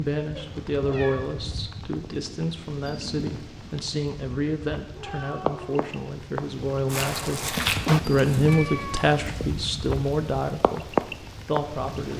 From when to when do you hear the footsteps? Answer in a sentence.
You can hear the footsteps from 6.9 to 8.6 s.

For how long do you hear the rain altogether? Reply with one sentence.
The rain can be heard for 12 seconds in total.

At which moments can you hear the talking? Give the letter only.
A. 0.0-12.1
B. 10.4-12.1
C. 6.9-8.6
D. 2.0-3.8
A.